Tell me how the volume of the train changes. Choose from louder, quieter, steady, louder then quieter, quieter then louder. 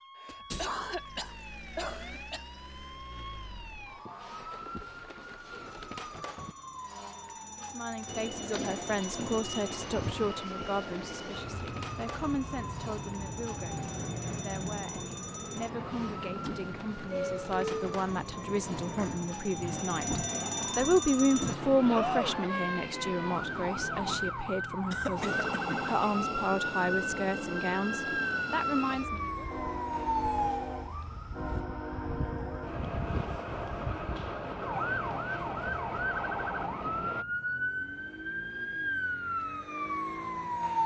steady.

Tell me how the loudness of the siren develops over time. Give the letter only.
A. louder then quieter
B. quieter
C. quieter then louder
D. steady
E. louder
E.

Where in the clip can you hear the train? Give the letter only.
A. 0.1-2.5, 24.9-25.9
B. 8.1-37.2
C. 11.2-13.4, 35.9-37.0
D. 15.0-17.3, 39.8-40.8
B.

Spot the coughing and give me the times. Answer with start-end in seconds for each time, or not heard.
0.1-2.5, 24.9-25.9.